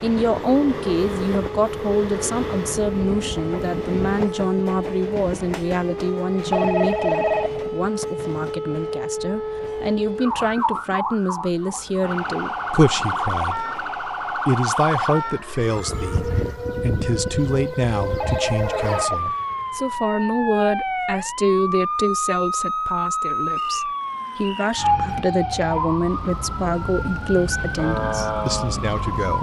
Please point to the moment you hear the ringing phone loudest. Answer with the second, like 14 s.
7 s.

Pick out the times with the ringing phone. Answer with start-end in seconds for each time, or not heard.
6.5-7.5, 18.1-19.2.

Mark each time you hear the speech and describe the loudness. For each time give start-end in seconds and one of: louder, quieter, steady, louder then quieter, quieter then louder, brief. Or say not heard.
0.0-29.3 steady.